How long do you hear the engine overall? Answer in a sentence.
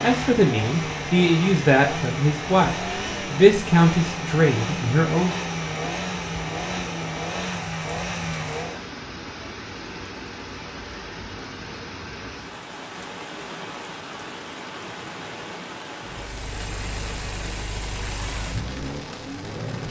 The engine can be heard for 13 seconds in total.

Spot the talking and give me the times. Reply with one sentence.
The talking can be heard from 0.0 to 5.3 s.